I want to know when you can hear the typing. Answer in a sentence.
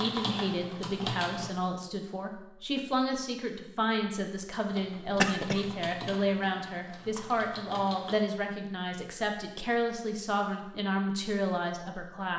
You can hear the typing from 0.0 to 1.5 s and from 4.7 to 8.2 s.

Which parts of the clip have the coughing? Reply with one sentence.
The coughing can be heard from 5.0 to 5.7 s.